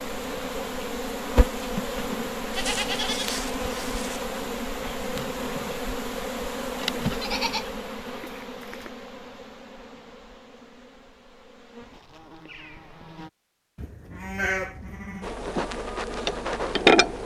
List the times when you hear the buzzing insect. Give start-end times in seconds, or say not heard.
0.0-13.3, 15.2-17.2.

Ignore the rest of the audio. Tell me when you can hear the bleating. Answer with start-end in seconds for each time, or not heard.
2.5-4.2, 7.0-8.9, 13.8-15.3.